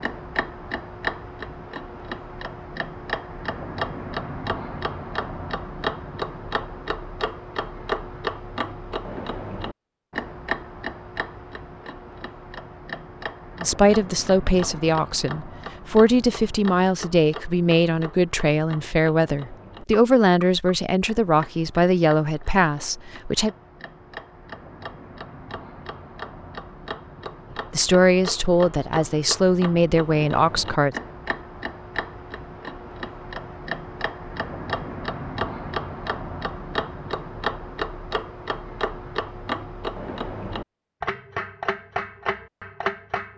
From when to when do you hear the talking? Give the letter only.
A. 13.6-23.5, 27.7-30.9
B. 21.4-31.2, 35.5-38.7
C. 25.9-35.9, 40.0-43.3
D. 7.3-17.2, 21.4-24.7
A.